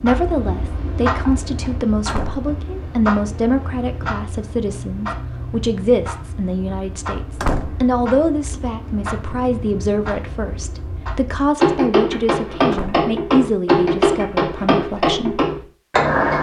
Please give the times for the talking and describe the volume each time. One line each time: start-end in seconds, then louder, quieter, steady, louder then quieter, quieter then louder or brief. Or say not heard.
0.0-15.4 steady.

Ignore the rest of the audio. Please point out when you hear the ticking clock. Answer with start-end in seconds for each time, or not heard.
0.0-16.3.